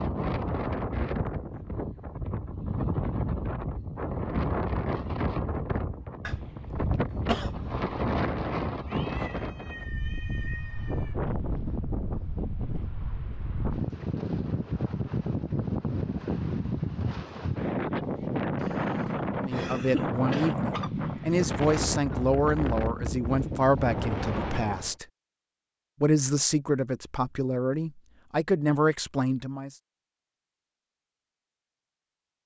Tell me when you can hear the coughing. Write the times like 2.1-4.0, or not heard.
6.2-7.8, 18.6-20.6.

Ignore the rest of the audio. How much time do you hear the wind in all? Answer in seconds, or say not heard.
25 s.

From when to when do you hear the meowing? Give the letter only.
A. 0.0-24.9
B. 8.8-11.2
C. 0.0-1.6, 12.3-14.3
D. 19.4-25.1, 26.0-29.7
B.